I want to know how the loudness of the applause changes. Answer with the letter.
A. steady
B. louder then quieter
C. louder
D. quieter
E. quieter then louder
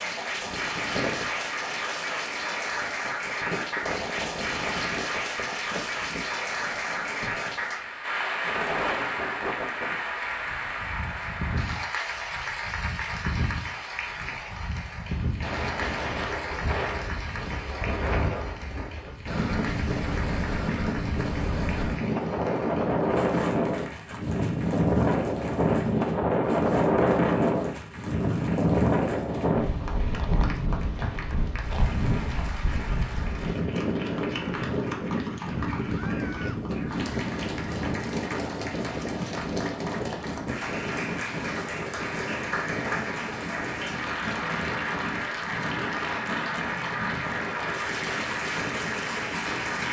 E.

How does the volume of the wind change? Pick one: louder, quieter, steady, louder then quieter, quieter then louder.
louder then quieter.